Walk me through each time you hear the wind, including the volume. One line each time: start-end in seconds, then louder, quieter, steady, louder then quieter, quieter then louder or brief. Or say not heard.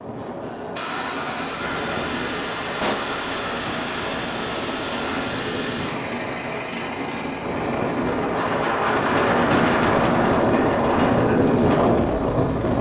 0.0-12.7 louder.